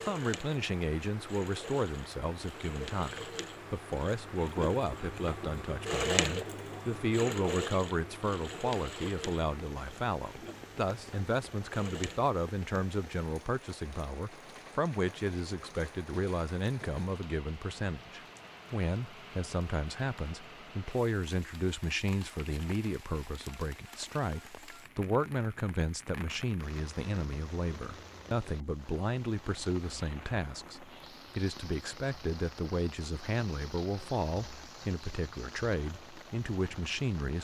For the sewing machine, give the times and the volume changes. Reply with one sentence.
You can hear the sewing machine from 0.0 to 12.2 s, getting louder then quieter.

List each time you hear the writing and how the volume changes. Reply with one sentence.
You can't hear the writing here.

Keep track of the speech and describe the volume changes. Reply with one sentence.
The volume of the speech stays about the same.